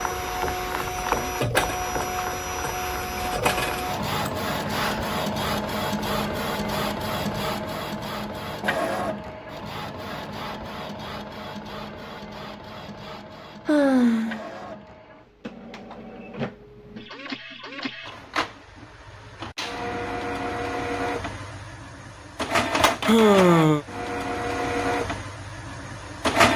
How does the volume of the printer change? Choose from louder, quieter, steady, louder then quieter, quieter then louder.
quieter then louder.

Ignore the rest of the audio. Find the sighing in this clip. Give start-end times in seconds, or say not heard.
4.2-5.1, 13.7-14.4, 23.1-23.9.